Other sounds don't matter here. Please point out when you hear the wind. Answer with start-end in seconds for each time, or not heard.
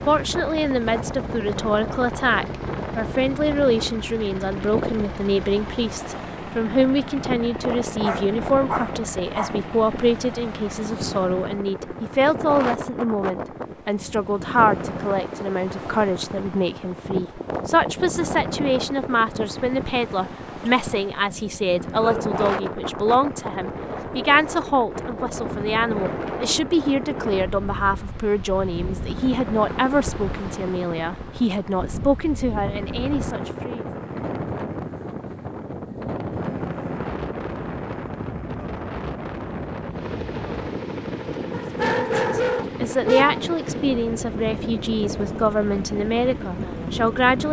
0.0-47.4.